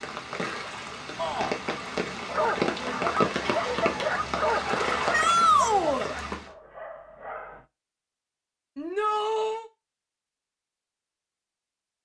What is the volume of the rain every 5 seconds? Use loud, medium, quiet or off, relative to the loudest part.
loud, loud, off.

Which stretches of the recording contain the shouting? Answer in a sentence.
The shouting can be heard from 1.1 to 1.6 s, from 5.1 to 6.1 s and from 8.8 to 9.7 s.